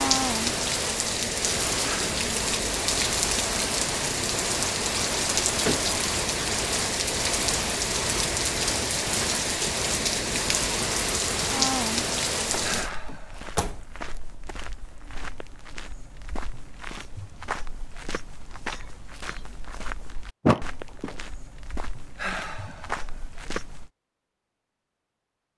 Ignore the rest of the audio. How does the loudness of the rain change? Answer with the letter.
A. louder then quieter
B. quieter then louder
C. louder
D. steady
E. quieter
D.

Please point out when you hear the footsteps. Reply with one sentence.
You can hear the footsteps from 12.7 to 23.9 s.